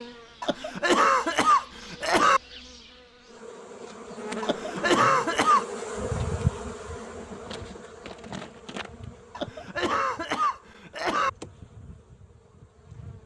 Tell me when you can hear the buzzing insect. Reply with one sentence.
The buzzing insect can be heard from 0.0 to 13.2 s.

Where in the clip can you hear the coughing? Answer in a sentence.
You can hear the coughing from 0.4 to 2.4 s, from 4.4 to 5.7 s and from 9.3 to 11.3 s.